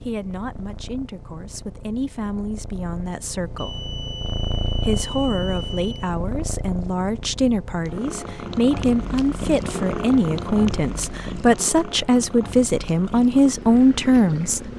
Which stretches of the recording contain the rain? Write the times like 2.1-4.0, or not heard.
not heard.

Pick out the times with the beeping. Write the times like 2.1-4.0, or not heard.
3.5-6.1.